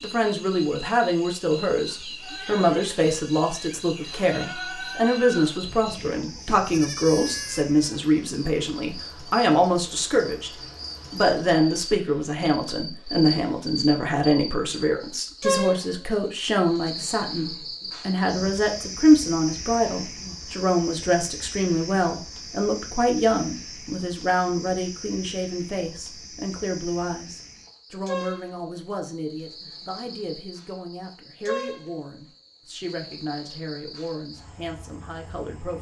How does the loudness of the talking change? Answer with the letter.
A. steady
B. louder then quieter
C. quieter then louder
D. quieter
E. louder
D.